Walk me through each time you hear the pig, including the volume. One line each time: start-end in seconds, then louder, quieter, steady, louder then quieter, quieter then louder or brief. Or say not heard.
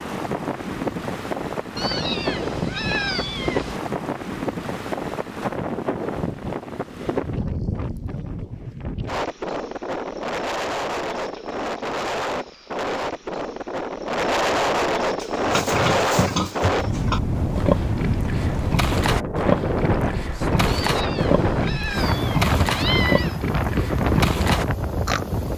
15.1-25.2 steady.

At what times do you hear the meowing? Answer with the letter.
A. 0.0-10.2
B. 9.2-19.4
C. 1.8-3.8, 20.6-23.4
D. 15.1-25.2
C.